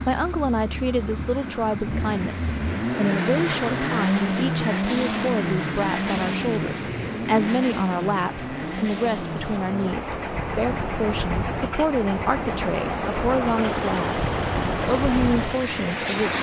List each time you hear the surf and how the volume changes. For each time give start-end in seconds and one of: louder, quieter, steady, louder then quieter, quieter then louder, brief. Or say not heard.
0.0-16.3 louder.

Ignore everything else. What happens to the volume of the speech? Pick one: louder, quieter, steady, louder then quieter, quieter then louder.
steady.